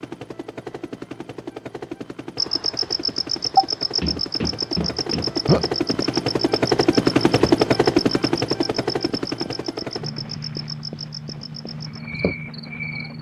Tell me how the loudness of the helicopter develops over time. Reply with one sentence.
The volume of the helicopter goes up, then down.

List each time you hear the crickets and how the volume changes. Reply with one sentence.
You can hear the crickets from 2.4 to 13.1 s, getting quieter.